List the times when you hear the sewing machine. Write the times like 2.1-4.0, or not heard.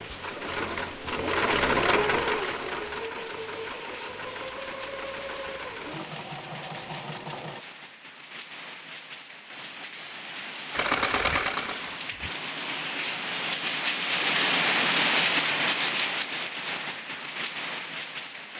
0.0-7.7, 10.7-12.3.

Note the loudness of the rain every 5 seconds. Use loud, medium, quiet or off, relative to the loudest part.
quiet, quiet, loud, loud.